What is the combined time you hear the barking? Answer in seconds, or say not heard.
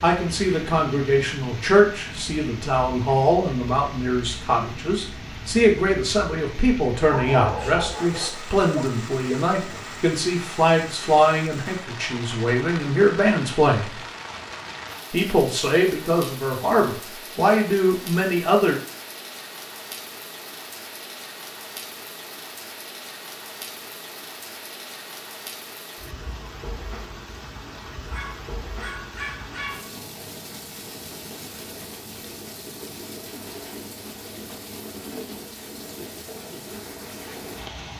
4 s.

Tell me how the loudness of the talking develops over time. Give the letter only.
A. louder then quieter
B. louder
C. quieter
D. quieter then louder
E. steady
E.